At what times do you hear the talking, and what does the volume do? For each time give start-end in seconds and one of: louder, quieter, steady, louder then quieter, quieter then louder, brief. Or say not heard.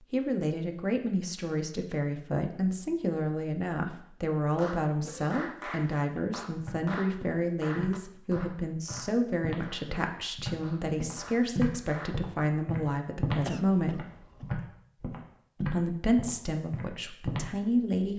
0.1-14.1 steady
15.7-18.1 brief.